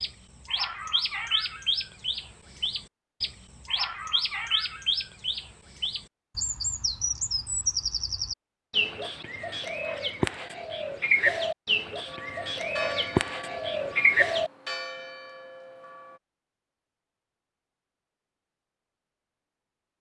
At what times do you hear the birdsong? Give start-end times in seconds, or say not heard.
0.0-14.5.